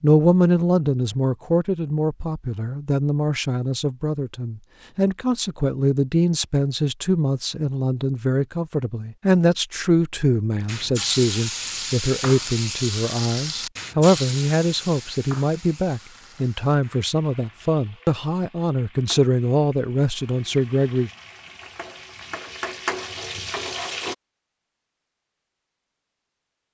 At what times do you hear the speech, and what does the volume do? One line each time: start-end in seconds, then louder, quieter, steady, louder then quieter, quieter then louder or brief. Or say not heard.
0.0-21.1 steady.